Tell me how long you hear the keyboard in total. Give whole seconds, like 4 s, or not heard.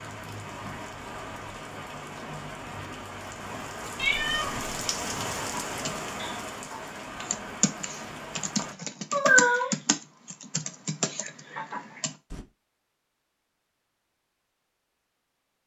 7 s.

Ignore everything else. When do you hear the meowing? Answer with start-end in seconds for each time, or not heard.
4.0-4.7, 9.1-9.7.